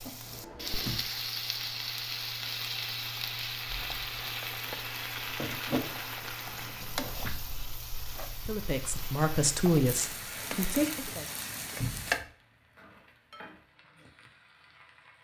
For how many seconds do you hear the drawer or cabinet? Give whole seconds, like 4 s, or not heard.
2 s.